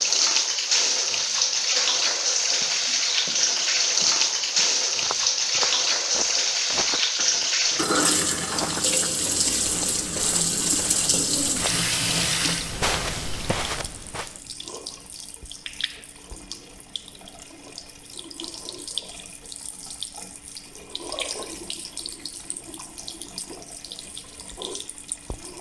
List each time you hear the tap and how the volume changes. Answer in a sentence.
You can hear the tap from 0.0 to 25.5 s, getting quieter.